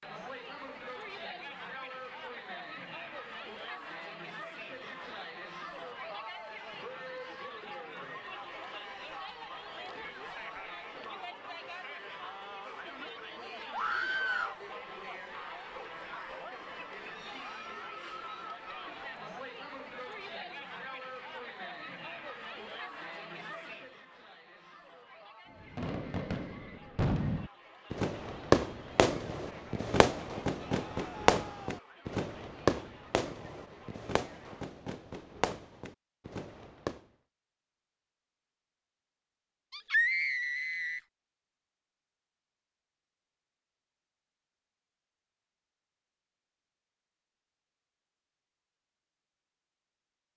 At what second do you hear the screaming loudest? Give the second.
40 s.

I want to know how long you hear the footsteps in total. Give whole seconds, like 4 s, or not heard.
not heard.